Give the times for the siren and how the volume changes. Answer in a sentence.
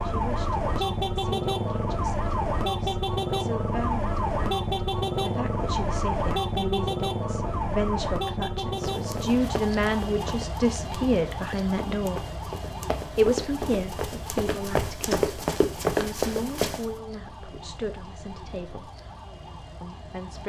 You can hear the siren from 0.0 to 20.4 s, getting quieter.